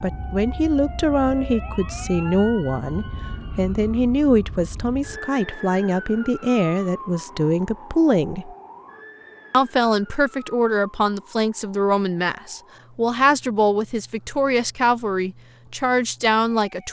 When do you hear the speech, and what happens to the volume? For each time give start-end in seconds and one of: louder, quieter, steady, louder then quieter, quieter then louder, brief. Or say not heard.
0.0-8.6 steady
9.5-16.8 steady.